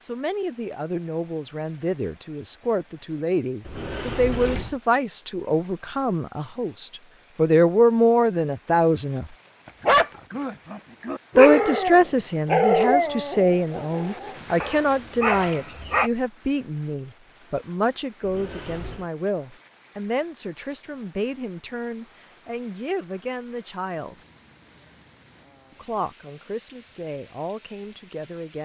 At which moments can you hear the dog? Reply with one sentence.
The dog can be heard from 9.8 to 16.1 s.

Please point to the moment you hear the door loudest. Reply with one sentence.
The volume of the door peaks at 4 seconds.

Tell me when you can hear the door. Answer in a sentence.
You can hear the door from 3.6 to 4.8 s and from 18.2 to 19.1 s.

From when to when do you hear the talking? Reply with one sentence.
You can hear the talking from 0.0 to 9.2 s, from 11.3 to 24.1 s and from 25.7 to 28.5 s.